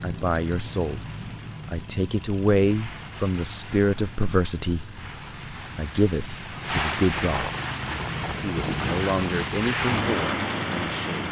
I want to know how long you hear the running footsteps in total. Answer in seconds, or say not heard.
not heard.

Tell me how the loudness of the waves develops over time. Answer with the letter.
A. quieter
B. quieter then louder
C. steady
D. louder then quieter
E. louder
E.